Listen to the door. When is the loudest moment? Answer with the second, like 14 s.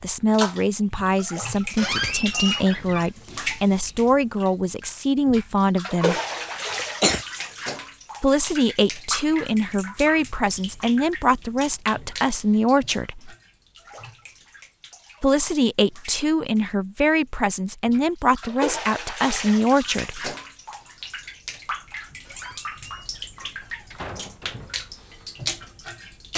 2 s.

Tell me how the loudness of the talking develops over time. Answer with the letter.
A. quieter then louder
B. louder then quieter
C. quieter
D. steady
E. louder
D.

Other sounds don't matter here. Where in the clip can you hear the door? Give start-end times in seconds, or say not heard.
1.8-3.1, 22.2-24.9.